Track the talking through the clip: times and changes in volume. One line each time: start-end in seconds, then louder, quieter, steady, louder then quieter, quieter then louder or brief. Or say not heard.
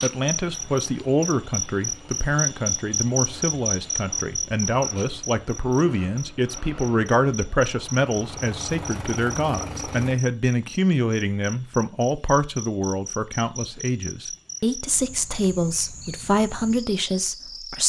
0.0-17.8 steady.